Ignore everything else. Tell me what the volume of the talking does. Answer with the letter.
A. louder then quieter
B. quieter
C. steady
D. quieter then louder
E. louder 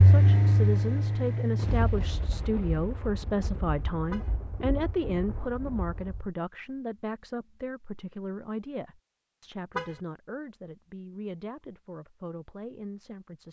B.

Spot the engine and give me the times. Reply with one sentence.
You can hear the engine from 0.0 to 2.5 s.